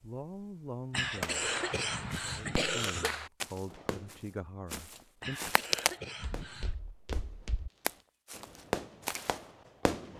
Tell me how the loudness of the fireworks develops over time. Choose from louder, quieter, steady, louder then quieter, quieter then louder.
quieter then louder.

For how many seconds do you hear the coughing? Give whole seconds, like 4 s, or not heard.
4 s.